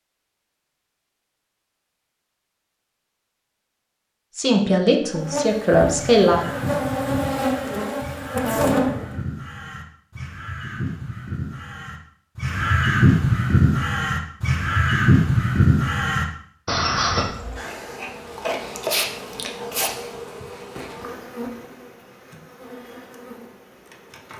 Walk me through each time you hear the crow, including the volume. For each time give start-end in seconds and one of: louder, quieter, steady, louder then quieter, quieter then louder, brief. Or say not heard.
6.0-17.2 louder.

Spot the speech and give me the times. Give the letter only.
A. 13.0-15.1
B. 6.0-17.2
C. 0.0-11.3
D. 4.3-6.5
D.